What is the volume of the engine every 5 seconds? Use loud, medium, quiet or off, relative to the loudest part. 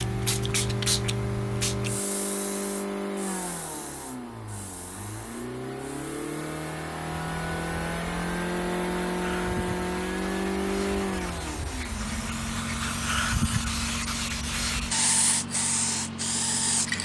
loud, loud, loud, medium.